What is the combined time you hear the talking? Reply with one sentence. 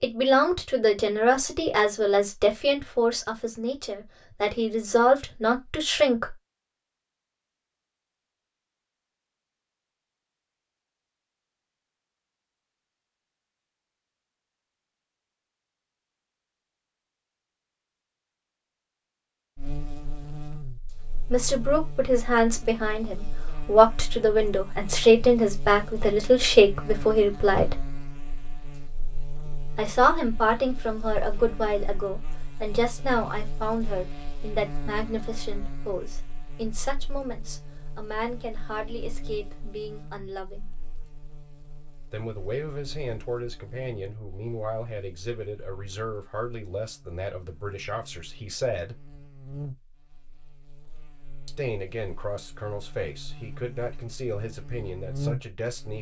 The talking can be heard for 35 seconds in total.